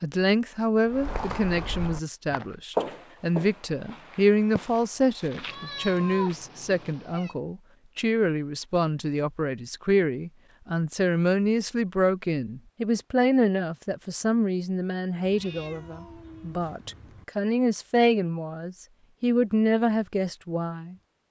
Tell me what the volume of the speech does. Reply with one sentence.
The volume of the speech stays about the same.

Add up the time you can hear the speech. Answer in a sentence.
You can hear the speech for 21 seconds altogether.